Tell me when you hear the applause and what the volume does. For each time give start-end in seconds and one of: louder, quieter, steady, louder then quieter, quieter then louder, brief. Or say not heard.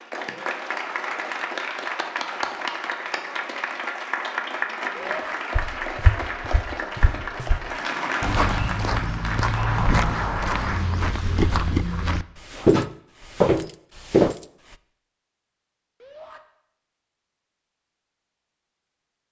0.0-10.8 steady.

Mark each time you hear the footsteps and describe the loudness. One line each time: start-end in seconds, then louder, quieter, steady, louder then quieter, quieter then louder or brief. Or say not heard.
5.5-14.3 louder.